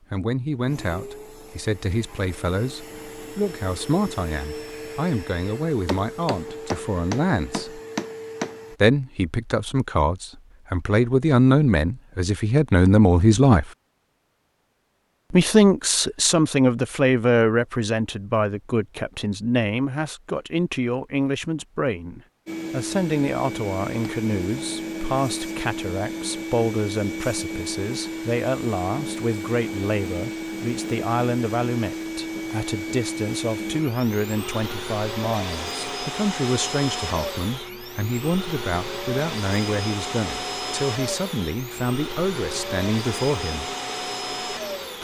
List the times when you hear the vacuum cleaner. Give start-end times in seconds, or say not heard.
0.6-8.8, 22.4-44.9.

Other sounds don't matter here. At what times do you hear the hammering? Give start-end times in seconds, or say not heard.
5.8-8.6.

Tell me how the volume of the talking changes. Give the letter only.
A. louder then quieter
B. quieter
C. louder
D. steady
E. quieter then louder
A.